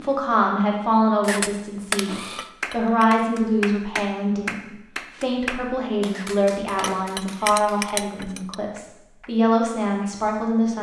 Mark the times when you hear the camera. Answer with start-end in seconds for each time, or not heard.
1.2-2.5, 6.1-7.0.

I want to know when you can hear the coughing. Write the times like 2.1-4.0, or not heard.
not heard.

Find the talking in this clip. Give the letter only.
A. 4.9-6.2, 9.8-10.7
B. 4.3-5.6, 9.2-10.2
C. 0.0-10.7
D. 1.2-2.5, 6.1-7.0
C.